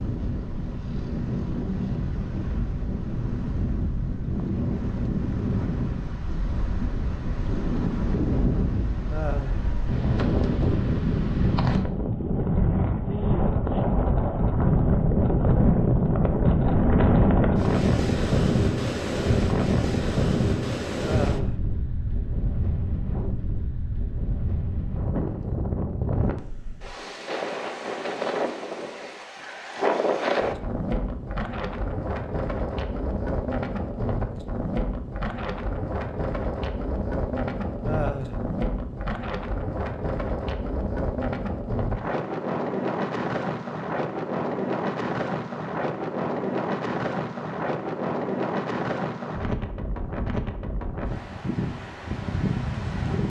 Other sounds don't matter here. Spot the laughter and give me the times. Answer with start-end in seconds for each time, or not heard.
9.1-9.7, 21.0-21.6, 37.9-38.4.